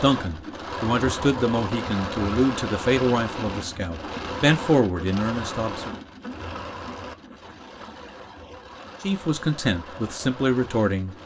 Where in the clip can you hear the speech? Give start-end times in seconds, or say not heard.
0.0-6.0, 9.0-11.2.